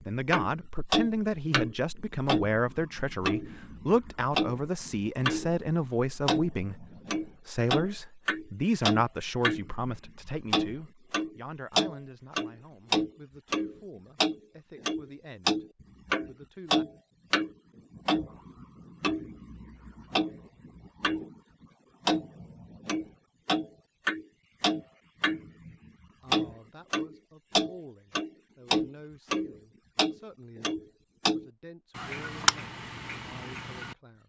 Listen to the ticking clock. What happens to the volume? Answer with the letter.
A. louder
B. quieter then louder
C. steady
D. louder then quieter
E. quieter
C.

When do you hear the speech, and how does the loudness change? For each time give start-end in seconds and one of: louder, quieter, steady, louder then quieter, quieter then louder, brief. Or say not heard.
0.1-16.9 quieter
26.2-34.2 steady.